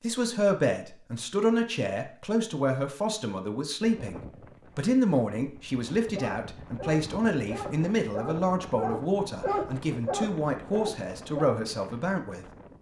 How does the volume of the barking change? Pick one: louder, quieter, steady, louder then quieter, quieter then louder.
louder then quieter.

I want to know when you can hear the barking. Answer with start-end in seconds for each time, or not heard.
6.2-11.6.